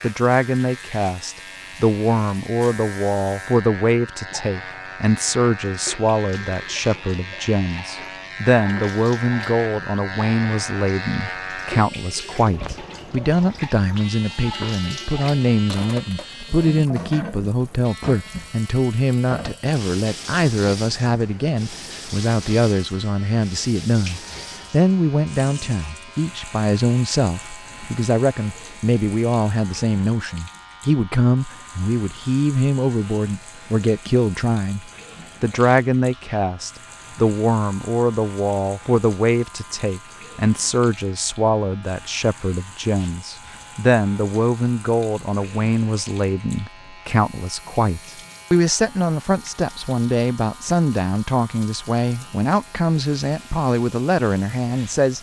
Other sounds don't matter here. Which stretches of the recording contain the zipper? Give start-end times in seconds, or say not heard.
not heard.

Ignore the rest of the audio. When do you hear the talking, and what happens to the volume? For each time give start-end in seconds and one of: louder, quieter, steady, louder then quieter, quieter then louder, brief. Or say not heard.
0.0-55.1 steady.